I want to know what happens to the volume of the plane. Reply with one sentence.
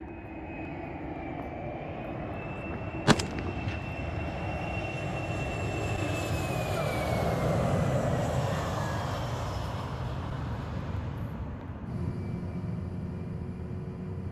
The loudness of the plane goes up, then down.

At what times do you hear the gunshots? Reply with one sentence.
The gunshots can be heard from 3.0 to 4.4 s.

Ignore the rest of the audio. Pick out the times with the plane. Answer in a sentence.
You can hear the plane from 0.0 to 14.2 s.